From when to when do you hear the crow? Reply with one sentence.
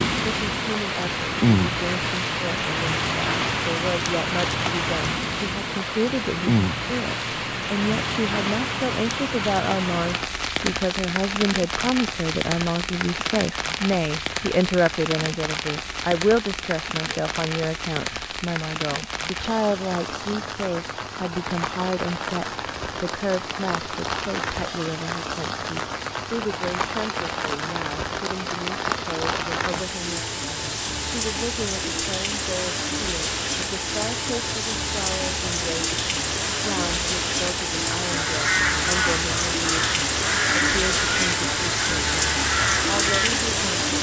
The crow can be heard from 38.0 to 43.5 s.